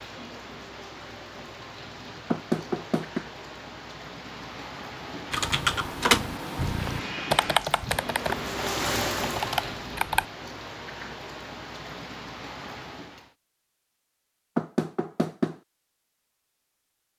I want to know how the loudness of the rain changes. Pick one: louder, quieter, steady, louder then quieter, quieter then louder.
louder then quieter.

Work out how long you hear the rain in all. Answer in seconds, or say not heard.
13 s.